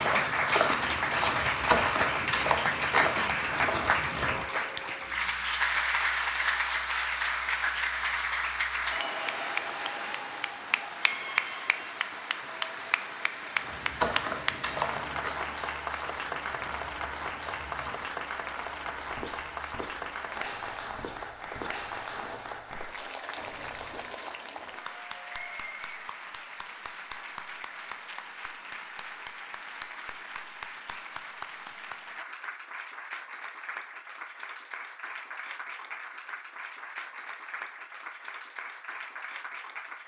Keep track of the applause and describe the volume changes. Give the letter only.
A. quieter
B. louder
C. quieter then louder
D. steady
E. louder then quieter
A.